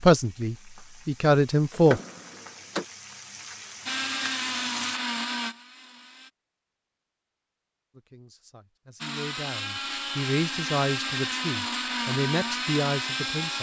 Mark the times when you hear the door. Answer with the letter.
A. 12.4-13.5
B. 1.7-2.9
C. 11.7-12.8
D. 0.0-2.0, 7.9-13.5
B.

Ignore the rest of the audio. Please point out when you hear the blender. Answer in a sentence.
The blender can be heard from 3.9 to 6.3 s and from 9.0 to 13.5 s.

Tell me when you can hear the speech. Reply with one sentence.
The speech can be heard from 0.0 to 2.0 s and from 7.9 to 13.5 s.